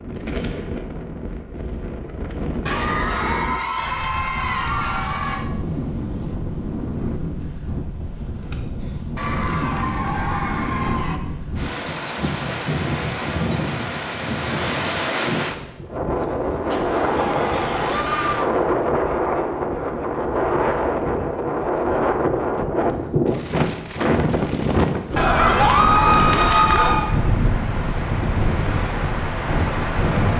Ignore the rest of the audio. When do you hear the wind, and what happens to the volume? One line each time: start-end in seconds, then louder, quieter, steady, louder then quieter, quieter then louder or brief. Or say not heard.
0.0-30.3 louder.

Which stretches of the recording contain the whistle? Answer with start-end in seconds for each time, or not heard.
not heard.